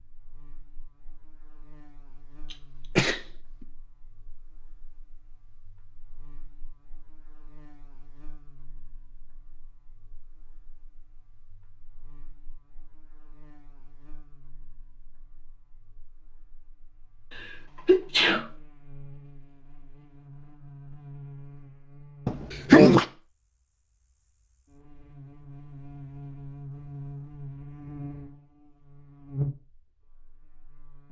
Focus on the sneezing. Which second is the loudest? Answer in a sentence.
The volume of the sneezing peaks at 23 seconds.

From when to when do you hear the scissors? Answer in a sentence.
The scissors can't be heard in this clip.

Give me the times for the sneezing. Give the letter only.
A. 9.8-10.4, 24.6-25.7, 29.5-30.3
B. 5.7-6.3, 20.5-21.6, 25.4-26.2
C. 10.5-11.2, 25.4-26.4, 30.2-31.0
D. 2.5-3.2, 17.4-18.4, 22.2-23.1
D.